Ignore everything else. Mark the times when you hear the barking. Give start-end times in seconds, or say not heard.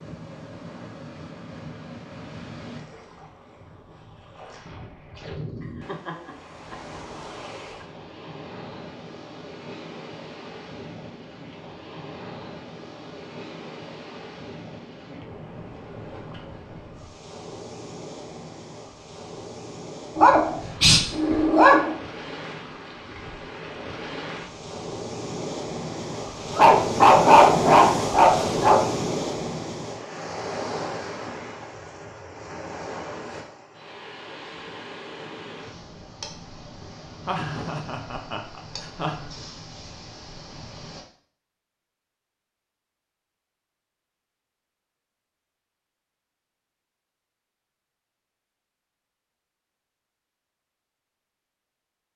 20.1-21.9, 26.5-28.9.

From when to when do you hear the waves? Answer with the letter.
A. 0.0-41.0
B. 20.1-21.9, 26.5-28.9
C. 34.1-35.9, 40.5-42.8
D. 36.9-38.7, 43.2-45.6
A.